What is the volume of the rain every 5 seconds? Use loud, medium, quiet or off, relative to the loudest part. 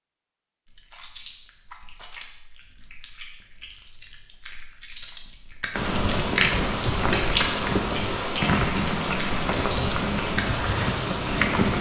off, loud, loud.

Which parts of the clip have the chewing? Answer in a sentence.
The chewing can be heard from 0.7 to 10.7 s.